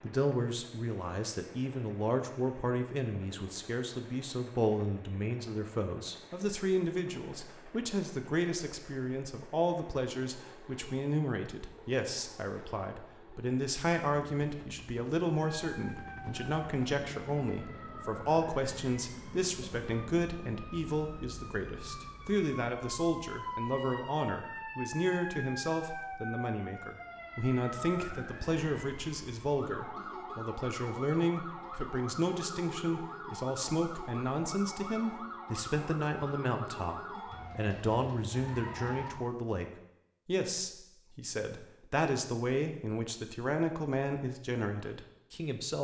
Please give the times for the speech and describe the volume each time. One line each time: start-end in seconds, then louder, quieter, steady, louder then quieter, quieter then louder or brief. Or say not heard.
0.0-45.7 steady.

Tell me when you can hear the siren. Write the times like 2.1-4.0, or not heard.
15.3-39.1.